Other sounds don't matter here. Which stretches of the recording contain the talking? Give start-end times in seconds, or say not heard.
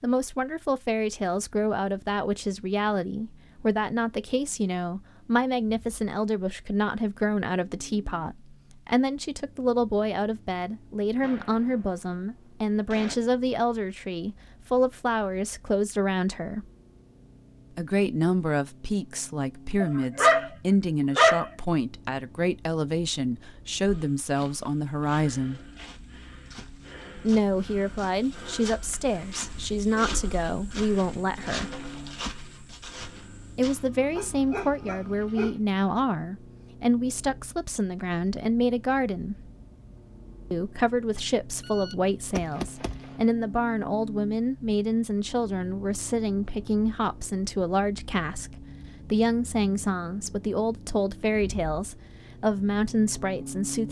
0.0-16.6, 17.8-25.7, 27.1-31.7, 33.5-39.4, 40.5-53.8.